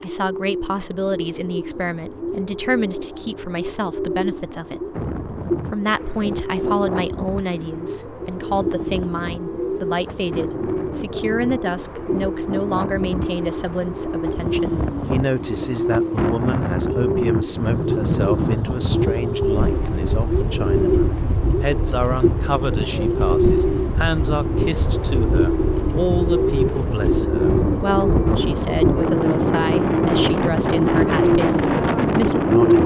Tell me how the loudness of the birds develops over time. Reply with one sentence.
The volume of the birds goes up.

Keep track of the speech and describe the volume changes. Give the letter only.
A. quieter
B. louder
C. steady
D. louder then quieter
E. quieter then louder
C.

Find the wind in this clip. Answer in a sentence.
The wind can be heard from 4.9 to 32.8 s.